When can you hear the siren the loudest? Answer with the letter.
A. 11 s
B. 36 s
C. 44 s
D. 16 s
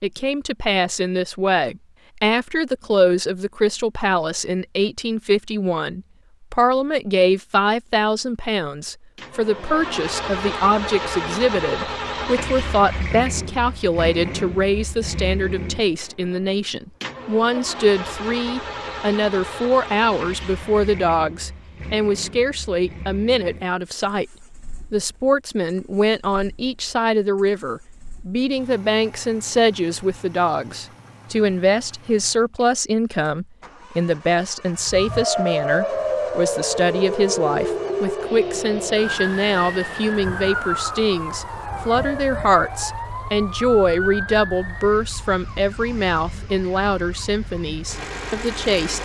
B.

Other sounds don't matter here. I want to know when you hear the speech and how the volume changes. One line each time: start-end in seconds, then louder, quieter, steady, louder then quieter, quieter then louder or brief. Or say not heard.
0.0-24.2 steady
24.9-49.0 steady.